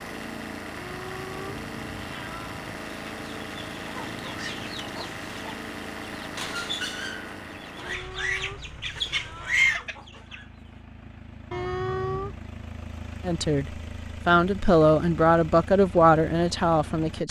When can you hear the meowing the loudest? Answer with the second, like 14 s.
12 s.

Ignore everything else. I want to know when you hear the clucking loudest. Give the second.
10 s.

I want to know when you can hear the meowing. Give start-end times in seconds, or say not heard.
0.8-2.8, 7.8-9.8, 11.5-12.4.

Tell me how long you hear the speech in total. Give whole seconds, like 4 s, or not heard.
4 s.